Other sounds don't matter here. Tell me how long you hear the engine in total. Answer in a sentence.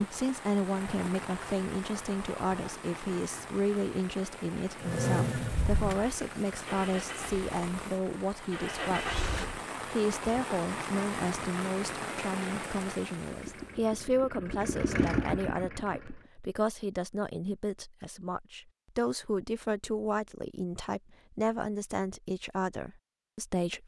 The engine can be heard for 8 seconds in total.